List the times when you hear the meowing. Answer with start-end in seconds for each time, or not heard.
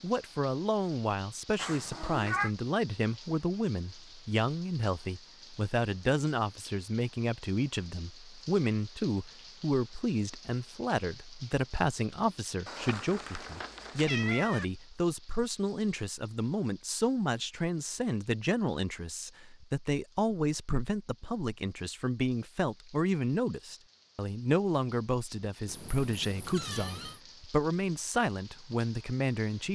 1.6-2.5, 12.7-14.7, 25.6-27.2.